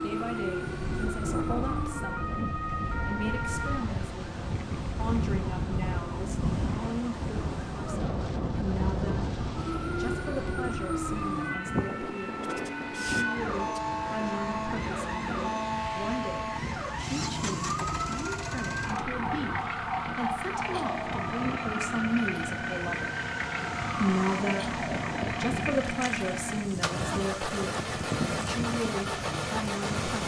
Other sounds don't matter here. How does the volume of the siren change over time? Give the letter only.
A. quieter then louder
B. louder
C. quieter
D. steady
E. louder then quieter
D.